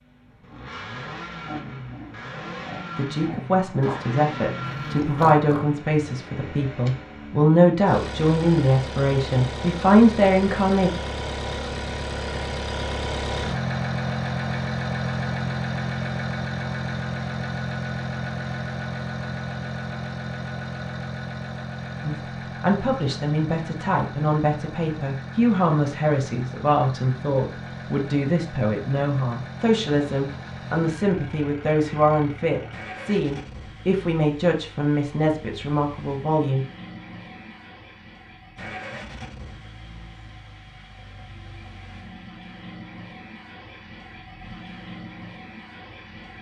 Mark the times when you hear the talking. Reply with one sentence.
You can hear the talking from 3.0 to 10.9 s and from 22.0 to 36.6 s.